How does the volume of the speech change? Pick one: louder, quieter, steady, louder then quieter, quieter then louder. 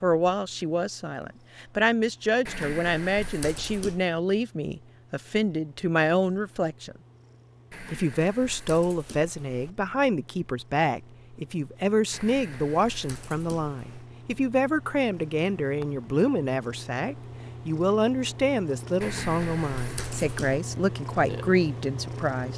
steady.